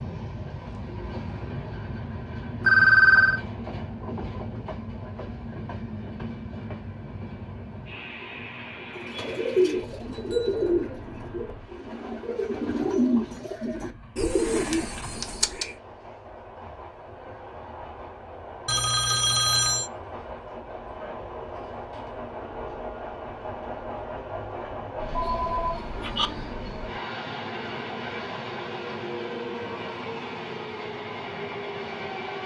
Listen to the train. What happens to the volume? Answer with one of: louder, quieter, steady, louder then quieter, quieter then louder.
quieter then louder.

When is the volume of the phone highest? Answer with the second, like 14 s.
3 s.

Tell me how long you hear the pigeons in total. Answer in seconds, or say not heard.
7 s.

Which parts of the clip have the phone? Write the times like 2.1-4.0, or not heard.
2.6-3.4, 18.6-19.9, 25.1-26.3.